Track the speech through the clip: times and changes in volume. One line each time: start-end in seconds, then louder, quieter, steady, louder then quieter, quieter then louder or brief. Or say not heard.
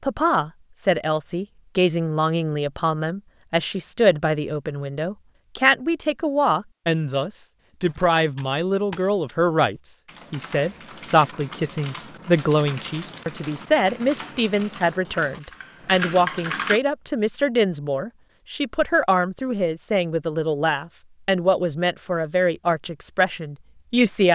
0.0-24.3 steady.